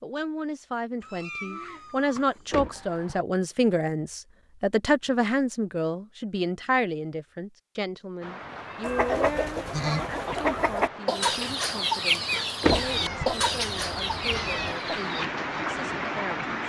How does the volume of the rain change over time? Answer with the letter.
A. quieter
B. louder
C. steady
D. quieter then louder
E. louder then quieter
B.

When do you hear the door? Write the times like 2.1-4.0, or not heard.
2.5-3.2, 12.6-13.3.